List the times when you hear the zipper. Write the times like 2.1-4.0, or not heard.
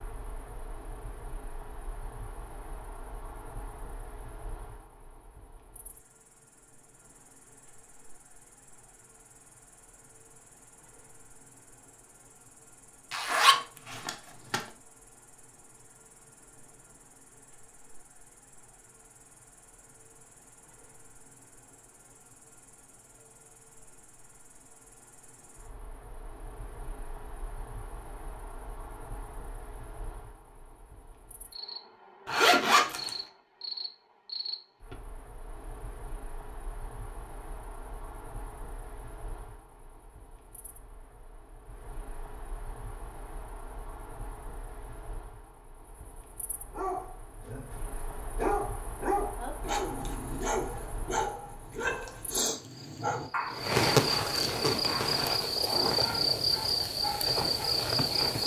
13.1-14.7, 32.2-33.1.